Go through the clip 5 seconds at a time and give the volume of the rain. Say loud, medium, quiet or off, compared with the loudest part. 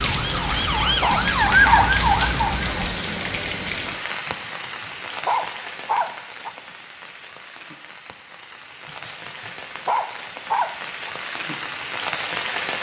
loud, medium, loud.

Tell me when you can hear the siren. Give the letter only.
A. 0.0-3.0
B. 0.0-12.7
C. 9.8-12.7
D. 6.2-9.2
A.